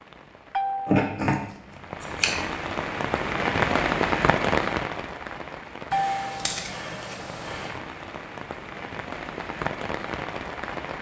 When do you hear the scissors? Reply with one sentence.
The scissors can be heard from 0.8 to 2.5 s and from 5.9 to 7.8 s.